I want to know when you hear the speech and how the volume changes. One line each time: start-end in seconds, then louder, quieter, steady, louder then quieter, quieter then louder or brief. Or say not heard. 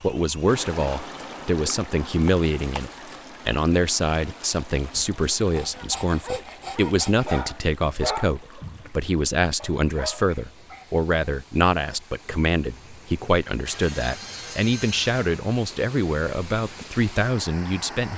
0.0-18.1 steady.